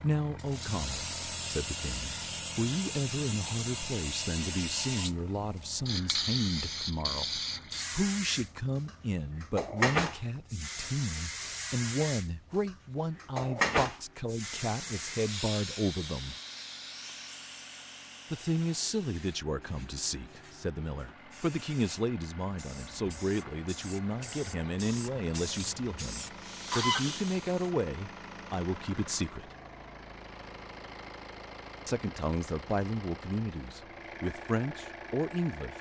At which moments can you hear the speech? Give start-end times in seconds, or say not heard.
0.0-16.4, 18.3-29.5, 31.9-35.7.